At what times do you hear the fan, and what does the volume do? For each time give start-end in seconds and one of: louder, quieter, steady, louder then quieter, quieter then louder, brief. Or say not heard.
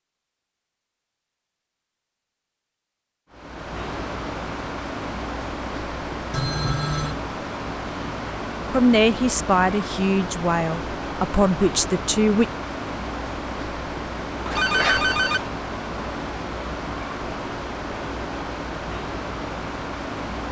3.3-20.4 steady.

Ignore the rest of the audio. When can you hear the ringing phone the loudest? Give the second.
15 s.